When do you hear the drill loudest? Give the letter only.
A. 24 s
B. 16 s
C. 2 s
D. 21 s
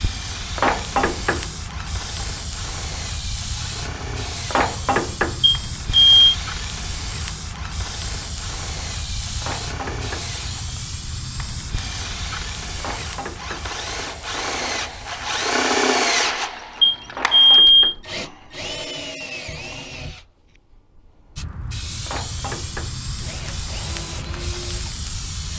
B.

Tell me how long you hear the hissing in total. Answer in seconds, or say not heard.
20 s.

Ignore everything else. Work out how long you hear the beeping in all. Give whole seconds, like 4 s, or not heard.
2 s.